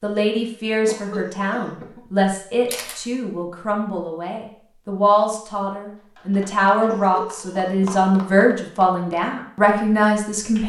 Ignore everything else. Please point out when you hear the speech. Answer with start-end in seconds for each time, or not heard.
0.0-10.6.